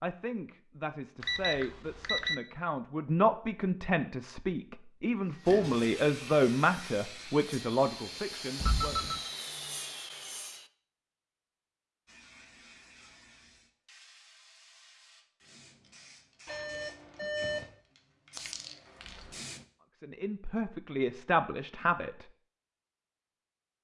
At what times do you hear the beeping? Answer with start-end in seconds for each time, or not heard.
1.2-2.4, 8.6-9.2, 16.4-17.7.